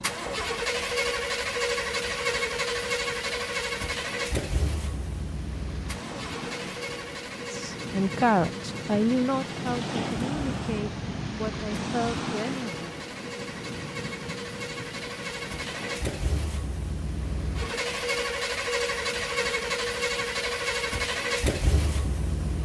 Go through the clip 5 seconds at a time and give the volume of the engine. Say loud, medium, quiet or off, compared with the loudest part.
loud, medium, medium, loud, loud.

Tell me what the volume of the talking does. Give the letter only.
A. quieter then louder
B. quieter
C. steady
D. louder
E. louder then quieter
B.